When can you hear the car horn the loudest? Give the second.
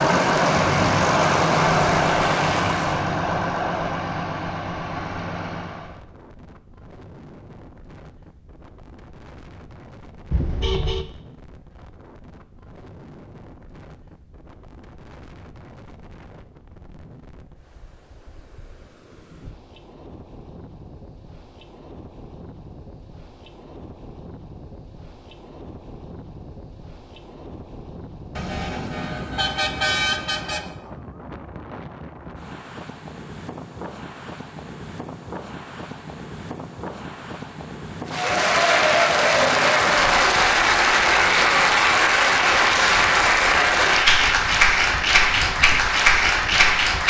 30 s.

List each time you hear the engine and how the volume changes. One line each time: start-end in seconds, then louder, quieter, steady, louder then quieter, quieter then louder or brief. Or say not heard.
0.0-6.0 quieter.